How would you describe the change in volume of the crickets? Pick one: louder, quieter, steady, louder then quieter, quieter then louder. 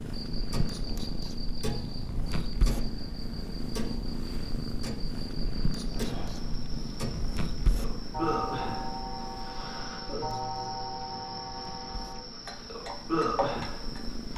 louder.